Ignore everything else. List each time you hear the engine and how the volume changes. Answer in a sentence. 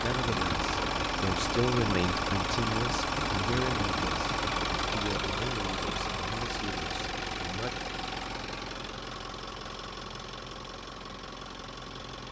The engine can be heard from 0.0 to 12.2 s, getting quieter.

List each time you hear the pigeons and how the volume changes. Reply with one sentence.
The pigeons can't be heard in this clip.